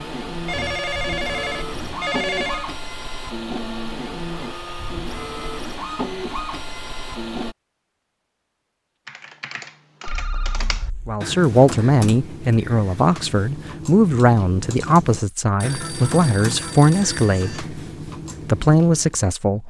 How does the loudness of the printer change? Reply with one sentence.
The loudness of the printer stays about the same.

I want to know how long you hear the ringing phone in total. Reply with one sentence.
You can hear the ringing phone for 5 seconds altogether.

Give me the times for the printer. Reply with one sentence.
The printer can be heard from 0.0 to 7.5 s.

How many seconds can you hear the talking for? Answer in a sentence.
The talking can be heard for 8 seconds in total.